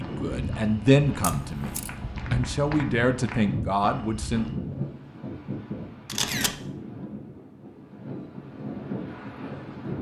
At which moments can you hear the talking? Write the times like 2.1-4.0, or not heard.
0.0-4.5.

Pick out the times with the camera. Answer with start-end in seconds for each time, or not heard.
1.2-1.9, 6.0-6.6.